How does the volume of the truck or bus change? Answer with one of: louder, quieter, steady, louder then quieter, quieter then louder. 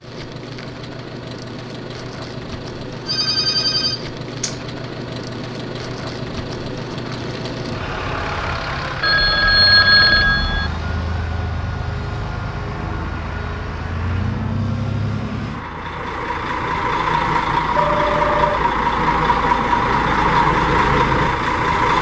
louder.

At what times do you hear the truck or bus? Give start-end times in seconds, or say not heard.
0.0-21.9.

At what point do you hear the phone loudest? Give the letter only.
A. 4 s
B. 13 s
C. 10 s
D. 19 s
C.